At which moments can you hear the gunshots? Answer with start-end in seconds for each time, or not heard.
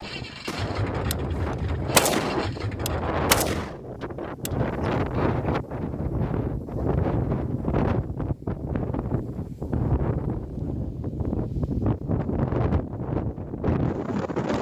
0.5-1.1, 1.9-4.5.